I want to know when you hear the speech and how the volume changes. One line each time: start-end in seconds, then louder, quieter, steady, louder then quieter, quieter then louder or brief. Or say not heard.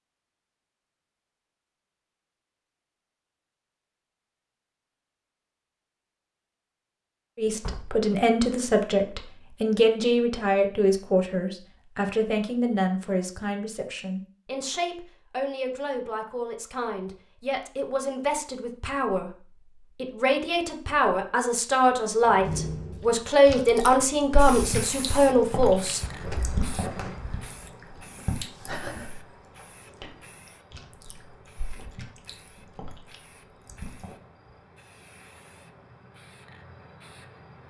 7.3-26.0 quieter then louder.